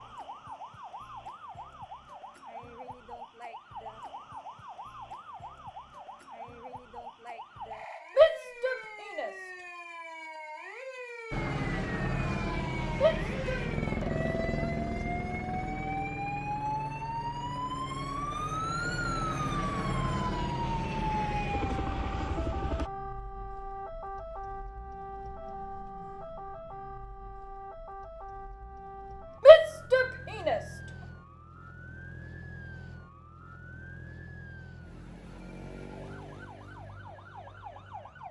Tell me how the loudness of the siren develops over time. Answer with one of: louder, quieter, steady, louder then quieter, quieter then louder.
louder then quieter.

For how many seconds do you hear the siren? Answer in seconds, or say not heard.
38 s.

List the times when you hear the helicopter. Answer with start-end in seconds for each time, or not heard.
11.3-22.9.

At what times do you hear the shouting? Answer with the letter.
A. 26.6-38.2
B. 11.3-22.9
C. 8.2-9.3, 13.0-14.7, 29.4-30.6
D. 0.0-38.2
C.